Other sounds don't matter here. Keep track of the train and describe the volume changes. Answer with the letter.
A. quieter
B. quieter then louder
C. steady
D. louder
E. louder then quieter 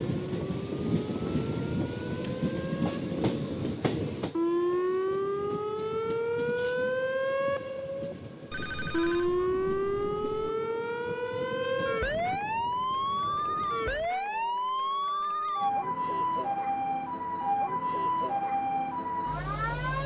A.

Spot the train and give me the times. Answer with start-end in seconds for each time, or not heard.
0.0-14.2.